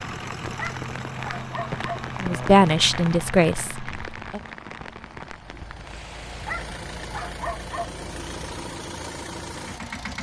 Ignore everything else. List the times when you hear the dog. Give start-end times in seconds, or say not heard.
0.6-2.0, 6.5-7.8.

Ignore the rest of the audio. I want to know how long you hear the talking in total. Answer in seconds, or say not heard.
2 s.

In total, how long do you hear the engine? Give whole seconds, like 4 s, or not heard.
10 s.